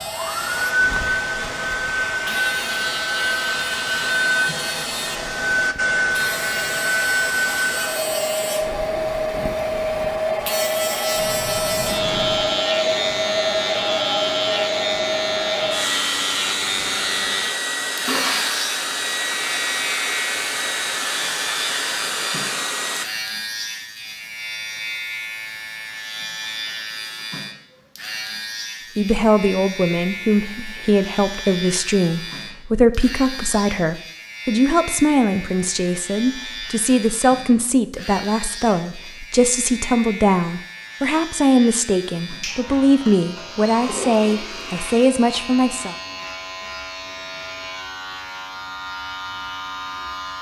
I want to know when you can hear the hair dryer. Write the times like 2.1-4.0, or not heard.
0.0-23.1.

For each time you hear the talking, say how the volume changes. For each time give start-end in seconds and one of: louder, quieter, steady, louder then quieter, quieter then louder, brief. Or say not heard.
28.9-46.0 steady.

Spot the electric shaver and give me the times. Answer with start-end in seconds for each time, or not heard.
0.0-50.3.